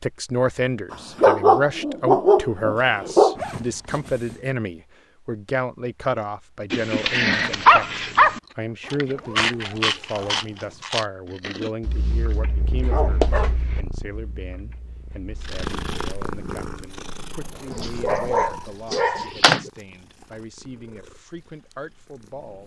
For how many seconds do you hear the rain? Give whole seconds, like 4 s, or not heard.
not heard.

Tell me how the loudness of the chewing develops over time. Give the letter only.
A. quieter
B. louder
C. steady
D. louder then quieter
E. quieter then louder
A.